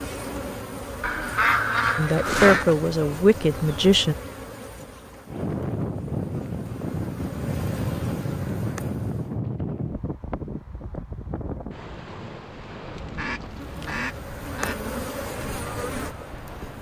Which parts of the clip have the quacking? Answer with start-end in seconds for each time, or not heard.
1.0-2.6, 12.9-14.8.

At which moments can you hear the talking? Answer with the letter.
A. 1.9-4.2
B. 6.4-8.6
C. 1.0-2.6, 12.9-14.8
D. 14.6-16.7
A.